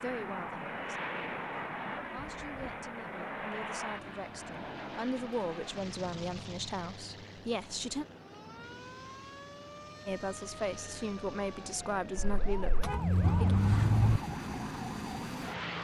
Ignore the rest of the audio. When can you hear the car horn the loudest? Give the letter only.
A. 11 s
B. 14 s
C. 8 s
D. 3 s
B.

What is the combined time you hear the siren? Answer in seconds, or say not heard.
8 s.